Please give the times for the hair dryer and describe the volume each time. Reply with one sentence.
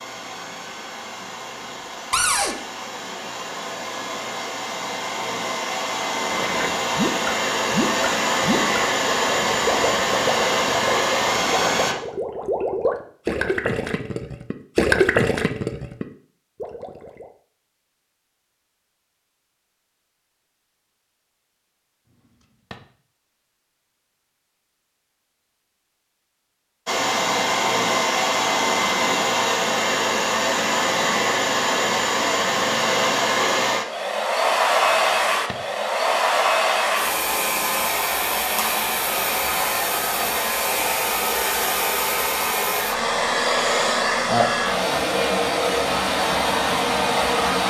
The hair dryer can be heard from 0.0 to 11.9 s, getting louder; and from 26.9 to 47.6 s, at a steady volume.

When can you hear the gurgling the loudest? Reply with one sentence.
The volume of the gurgling peaks at 15 seconds.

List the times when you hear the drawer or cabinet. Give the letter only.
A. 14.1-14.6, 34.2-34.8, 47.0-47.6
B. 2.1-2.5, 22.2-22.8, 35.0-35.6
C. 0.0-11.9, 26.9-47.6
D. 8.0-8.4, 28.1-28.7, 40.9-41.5
B.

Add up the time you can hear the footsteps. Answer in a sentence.
You can't hear the footsteps here.